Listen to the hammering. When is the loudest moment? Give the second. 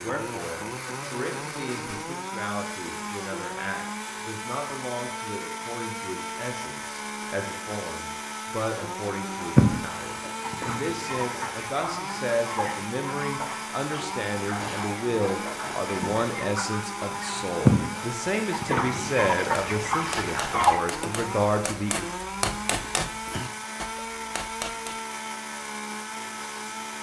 23 s.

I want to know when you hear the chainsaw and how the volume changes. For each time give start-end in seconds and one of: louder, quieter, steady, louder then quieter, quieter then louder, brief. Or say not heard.
0.0-26.9 steady.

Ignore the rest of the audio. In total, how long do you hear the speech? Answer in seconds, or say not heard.
22 s.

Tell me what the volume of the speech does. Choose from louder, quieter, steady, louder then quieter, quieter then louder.
louder.